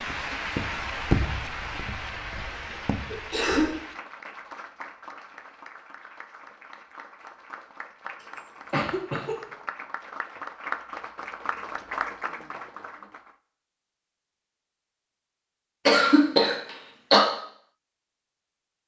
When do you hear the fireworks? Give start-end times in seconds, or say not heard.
not heard.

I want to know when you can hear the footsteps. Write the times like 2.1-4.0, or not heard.
0.0-3.8.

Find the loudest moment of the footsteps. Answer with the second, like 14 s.
1 s.